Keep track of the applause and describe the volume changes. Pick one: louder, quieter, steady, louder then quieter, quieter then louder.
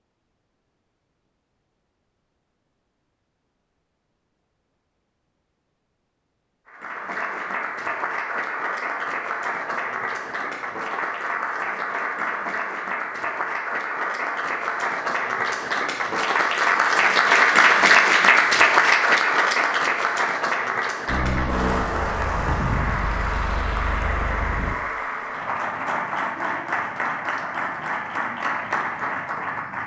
louder then quieter.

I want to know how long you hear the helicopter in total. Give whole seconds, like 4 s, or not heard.
4 s.